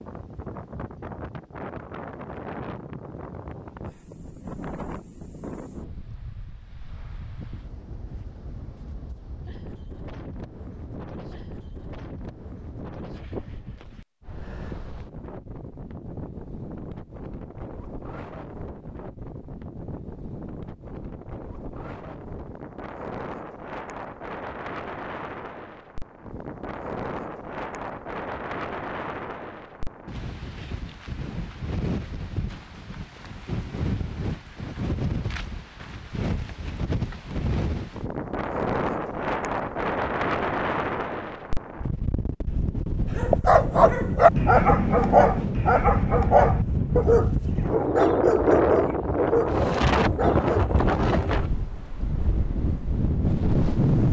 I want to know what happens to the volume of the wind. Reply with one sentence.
The volume of the wind goes up.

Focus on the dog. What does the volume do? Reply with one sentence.
The loudness of the dog goes down.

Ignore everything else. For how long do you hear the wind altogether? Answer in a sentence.
You can hear the wind for 54 seconds altogether.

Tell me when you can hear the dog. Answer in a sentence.
The dog can be heard from 43.1 to 50.6 s.